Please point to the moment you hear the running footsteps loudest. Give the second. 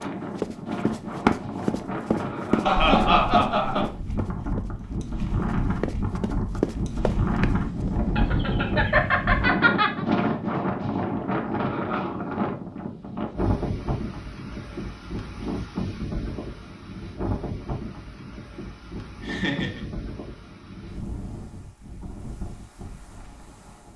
1 s.